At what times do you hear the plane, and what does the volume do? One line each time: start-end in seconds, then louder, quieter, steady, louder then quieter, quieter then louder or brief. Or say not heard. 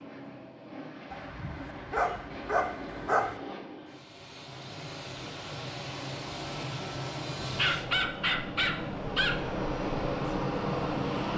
0.0-11.3 louder.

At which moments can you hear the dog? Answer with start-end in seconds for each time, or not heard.
1.1-3.4, 7.5-9.4.